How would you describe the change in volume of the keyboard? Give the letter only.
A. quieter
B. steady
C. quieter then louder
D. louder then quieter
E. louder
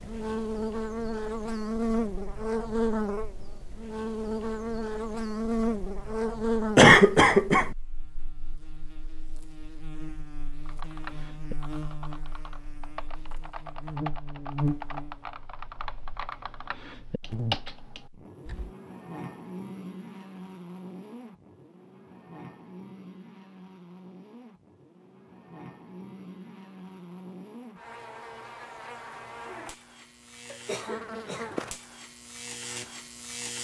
E.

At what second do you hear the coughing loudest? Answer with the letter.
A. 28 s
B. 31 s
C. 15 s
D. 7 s
D.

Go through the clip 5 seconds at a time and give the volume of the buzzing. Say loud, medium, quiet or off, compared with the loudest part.
loud, loud, medium, medium, quiet, quiet, medium.